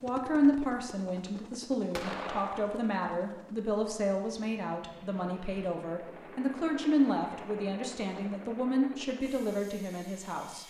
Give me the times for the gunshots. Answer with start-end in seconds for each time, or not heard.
1.9-2.9.